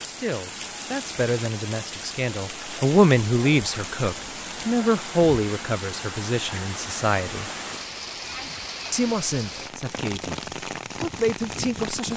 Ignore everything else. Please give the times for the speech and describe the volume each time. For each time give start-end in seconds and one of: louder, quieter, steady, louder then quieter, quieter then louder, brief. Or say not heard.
0.0-7.5 louder then quieter
8.9-10.4 brief
11.0-12.1 brief.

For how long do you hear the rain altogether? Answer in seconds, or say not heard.
12 s.